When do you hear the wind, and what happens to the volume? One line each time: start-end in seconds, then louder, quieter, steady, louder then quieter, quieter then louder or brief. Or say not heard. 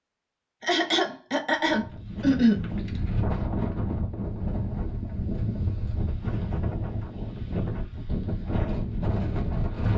1.6-9.9 steady.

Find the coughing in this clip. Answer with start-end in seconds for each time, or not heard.
0.6-2.6.